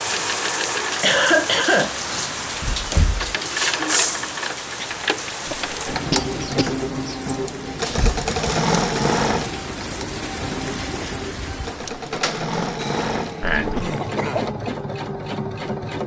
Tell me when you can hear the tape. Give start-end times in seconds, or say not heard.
not heard.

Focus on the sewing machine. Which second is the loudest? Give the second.
9 s.